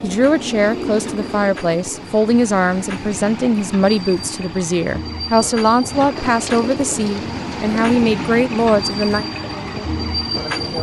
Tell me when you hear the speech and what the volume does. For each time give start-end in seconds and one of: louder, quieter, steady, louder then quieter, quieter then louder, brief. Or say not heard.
0.0-10.7 steady.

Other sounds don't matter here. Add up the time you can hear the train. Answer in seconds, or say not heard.
11 s.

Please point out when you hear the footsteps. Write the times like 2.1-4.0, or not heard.
not heard.